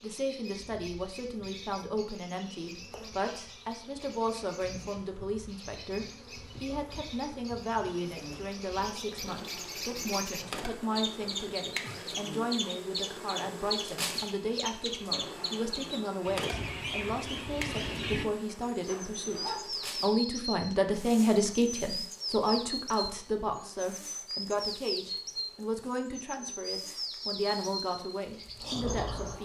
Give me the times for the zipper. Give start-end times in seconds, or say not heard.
18.9-19.9.